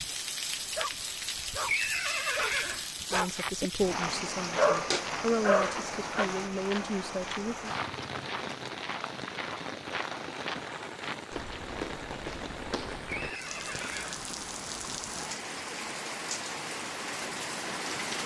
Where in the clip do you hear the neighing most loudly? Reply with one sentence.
The loudest moment of the neighing is at 2 seconds.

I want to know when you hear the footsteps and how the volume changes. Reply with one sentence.
You can hear the footsteps from 3.3 to 14.1 s, at a steady volume.